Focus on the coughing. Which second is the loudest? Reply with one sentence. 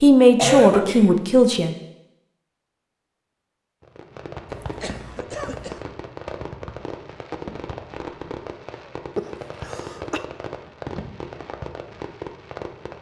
The volume of the coughing peaks at 1 second.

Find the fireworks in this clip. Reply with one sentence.
The fireworks can be heard from 3.8 to 12.9 s.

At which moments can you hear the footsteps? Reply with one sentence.
You can't hear the footsteps here.